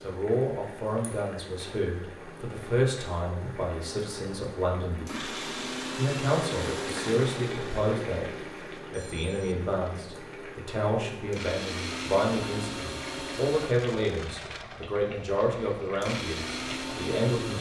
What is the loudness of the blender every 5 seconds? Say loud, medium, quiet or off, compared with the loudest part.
off, loud, loud, loud.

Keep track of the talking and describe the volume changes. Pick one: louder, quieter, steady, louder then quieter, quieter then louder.
steady.